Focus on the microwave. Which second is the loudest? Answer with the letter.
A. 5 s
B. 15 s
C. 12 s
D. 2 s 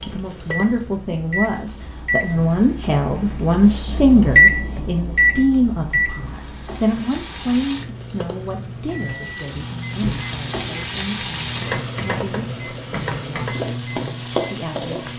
A.